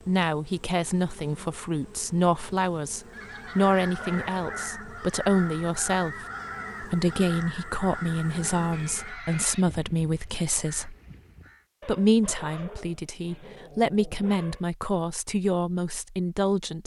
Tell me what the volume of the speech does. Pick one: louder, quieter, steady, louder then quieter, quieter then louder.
steady.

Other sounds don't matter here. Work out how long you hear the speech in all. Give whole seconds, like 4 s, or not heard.
16 s.